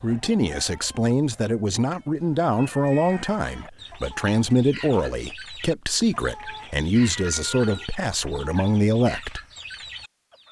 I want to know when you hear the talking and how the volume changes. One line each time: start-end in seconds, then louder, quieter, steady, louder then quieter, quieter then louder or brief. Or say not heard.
0.0-9.4 steady.